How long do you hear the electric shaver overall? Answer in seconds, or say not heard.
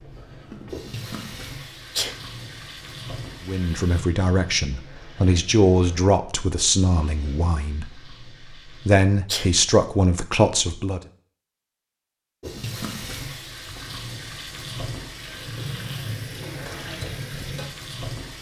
not heard.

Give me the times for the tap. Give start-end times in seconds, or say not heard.
0.0-8.9, 12.4-18.3.